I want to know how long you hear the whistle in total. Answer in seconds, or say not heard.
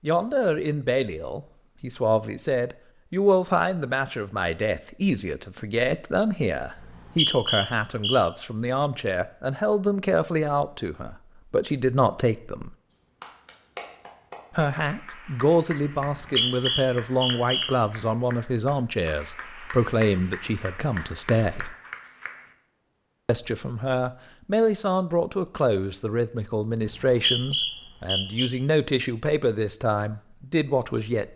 5 s.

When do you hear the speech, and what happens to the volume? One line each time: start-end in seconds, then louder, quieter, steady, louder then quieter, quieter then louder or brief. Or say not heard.
0.0-12.8 steady
14.6-21.8 steady
23.2-31.3 steady.